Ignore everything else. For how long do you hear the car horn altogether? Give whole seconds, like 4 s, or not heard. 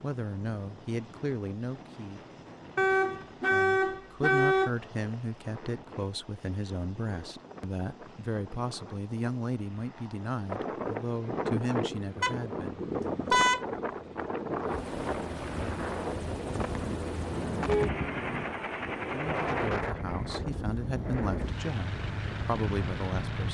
4 s.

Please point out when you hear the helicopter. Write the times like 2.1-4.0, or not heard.
0.0-23.4.